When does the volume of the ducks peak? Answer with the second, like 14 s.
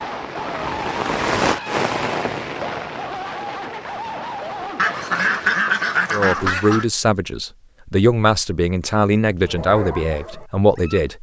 6 s.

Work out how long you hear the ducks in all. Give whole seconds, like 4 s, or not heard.
2 s.